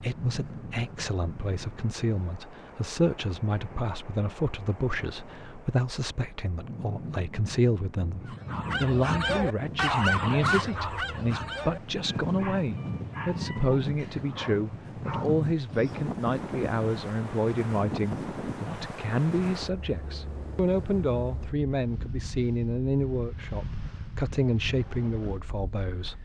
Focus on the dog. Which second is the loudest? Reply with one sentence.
The volume of the dog peaks at 10 seconds.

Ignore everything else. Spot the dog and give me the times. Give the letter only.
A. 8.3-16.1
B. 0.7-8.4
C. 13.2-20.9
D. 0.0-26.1
A.